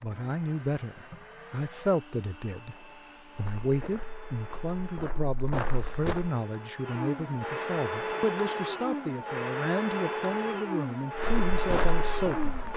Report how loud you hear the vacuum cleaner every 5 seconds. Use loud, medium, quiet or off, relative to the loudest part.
quiet, loud, loud.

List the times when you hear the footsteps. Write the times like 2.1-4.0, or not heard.
3.4-6.3, 11.2-12.7.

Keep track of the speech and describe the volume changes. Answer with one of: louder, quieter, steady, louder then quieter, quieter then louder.
steady.